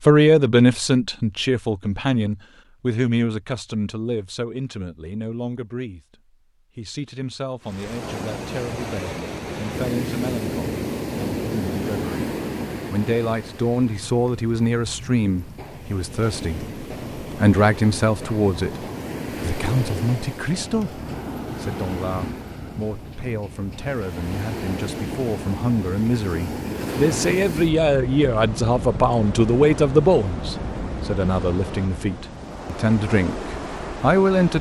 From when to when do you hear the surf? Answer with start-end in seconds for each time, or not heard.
7.6-34.5.